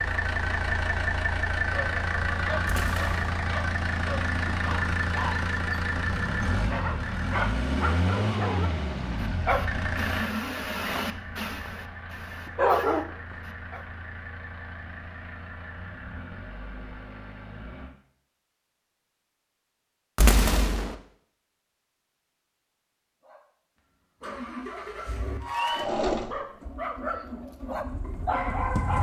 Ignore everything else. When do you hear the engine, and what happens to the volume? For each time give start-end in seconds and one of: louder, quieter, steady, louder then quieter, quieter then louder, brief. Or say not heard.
0.0-17.9 quieter
24.2-28.9 louder then quieter.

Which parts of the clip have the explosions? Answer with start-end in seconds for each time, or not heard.
2.6-3.2, 20.1-20.9.